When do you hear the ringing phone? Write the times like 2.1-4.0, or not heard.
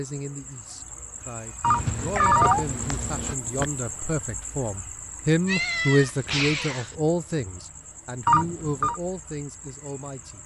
1.6-2.6, 8.2-9.0.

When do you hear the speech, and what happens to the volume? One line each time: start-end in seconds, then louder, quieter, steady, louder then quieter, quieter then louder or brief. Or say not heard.
0.0-10.4 louder then quieter.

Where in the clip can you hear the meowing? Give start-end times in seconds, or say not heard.
1.6-3.6, 5.5-7.0.